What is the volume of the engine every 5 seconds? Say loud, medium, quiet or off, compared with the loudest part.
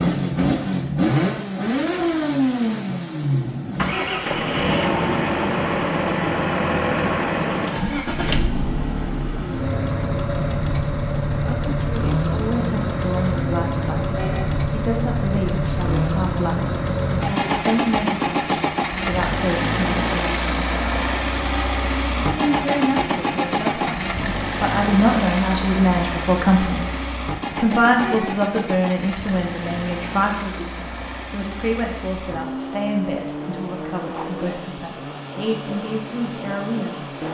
loud, loud, loud, loud, loud, medium, medium, medium.